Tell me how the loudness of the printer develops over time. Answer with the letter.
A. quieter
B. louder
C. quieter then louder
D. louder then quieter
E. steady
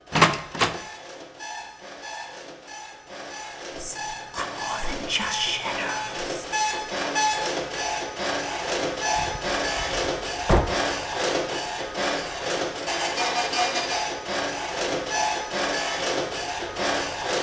B.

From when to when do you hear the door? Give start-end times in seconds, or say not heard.
0.1-0.8, 9.2-10.7.